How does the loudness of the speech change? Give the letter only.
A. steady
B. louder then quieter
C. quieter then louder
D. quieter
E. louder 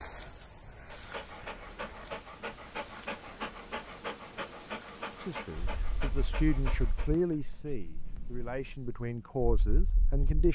C.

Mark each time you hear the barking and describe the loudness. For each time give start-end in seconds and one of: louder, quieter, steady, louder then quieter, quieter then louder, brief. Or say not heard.
0.8-7.3 steady.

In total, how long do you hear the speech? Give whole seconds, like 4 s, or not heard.
5 s.